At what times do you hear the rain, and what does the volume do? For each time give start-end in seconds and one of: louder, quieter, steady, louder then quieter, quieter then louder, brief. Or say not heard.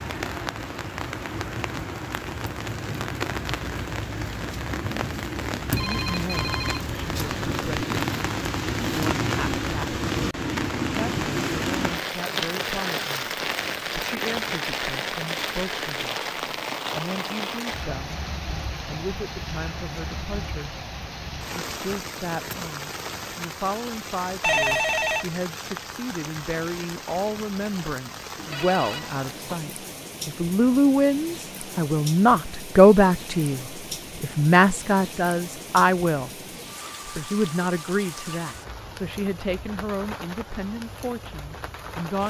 0.0-42.2 quieter.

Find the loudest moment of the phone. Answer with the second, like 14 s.
25 s.